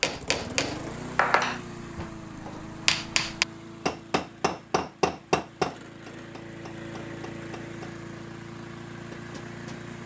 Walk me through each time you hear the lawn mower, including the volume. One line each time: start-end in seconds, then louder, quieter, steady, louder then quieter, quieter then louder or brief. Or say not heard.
0.0-10.0 quieter then louder.